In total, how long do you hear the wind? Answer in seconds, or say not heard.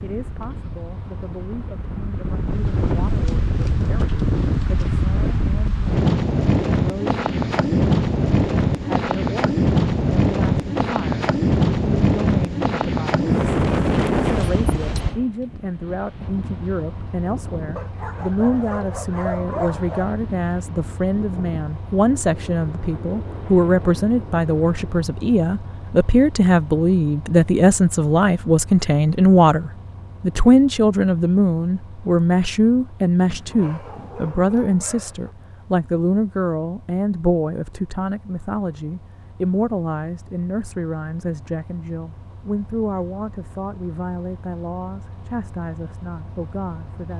25 s.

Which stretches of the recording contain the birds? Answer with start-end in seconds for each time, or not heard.
not heard.